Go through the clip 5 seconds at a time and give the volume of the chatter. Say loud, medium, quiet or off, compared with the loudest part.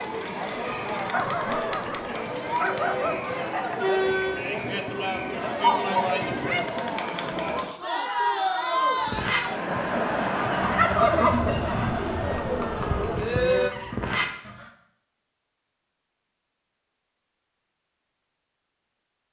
loud, loud, loud, off.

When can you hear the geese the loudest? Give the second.
11 s.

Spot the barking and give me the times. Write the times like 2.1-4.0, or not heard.
1.1-3.1.